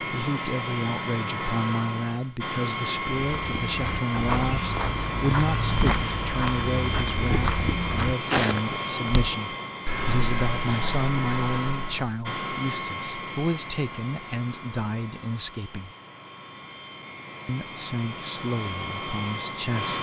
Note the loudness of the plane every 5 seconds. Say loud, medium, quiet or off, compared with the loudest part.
loud, loud, loud, medium.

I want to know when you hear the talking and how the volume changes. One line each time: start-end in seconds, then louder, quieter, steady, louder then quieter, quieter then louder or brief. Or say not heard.
0.0-15.9 steady
17.4-19.9 brief.